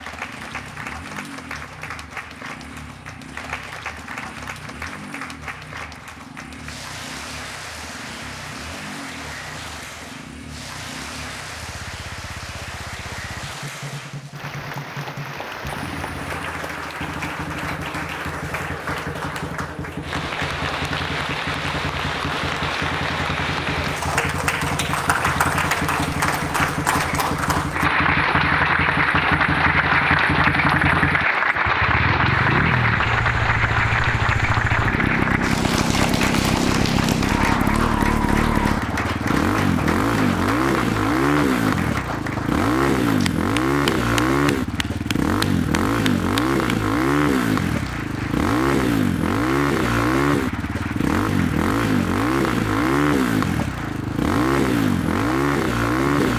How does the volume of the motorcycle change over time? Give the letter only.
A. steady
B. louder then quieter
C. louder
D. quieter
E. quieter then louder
C.